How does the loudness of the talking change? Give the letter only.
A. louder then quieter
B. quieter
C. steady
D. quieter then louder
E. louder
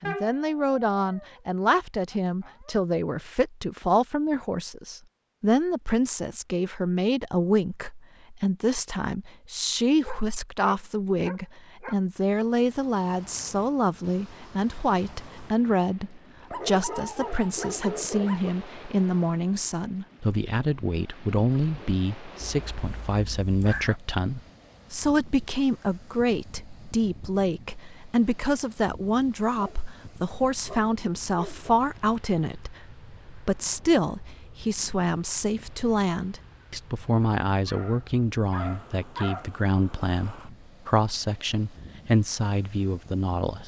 C.